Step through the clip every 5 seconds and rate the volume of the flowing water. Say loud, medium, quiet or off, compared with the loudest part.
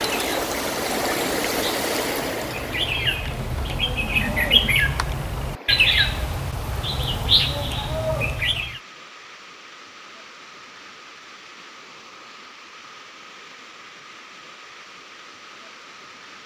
loud, quiet, quiet, quiet.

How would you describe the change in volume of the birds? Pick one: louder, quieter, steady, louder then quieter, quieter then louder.
louder.